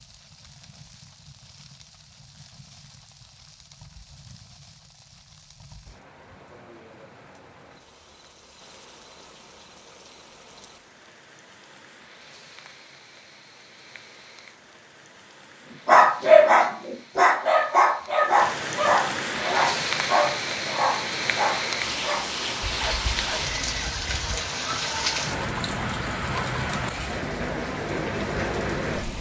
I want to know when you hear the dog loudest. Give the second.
16 s.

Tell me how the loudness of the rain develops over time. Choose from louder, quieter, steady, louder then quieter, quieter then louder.
louder.